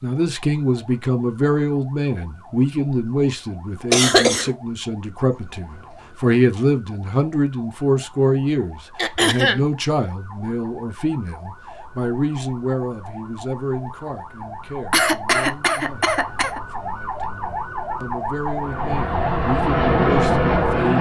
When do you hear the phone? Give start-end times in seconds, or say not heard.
not heard.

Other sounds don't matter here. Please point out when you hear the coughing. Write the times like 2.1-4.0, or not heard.
3.9-4.5, 8.9-9.7, 14.9-16.6.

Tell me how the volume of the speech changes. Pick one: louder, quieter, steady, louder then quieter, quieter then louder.
quieter.